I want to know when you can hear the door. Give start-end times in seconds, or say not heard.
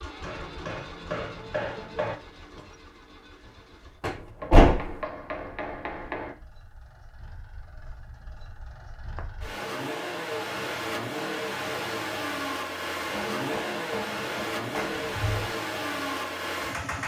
4.0-5.0, 14.8-15.5.